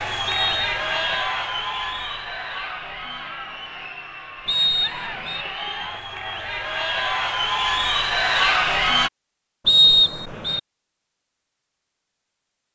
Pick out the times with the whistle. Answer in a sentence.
You can hear the whistle from 0.2 to 1.2 s, from 4.5 to 5.5 s and from 9.7 to 10.6 s.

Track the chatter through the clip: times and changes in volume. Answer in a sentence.
The chatter can be heard from 0.0 to 9.1 s, getting quieter then louder.